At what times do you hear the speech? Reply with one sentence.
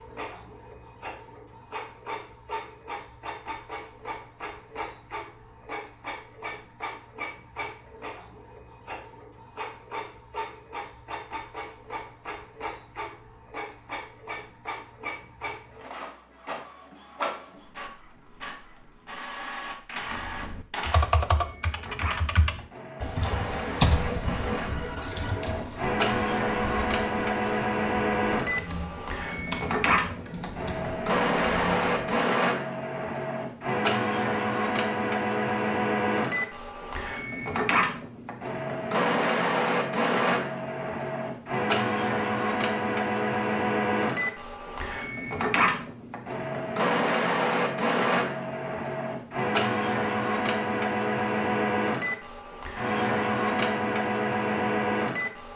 You can't hear the speech here.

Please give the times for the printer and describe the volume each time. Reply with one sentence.
You can hear the printer from 0.0 to 55.5 s, getting louder.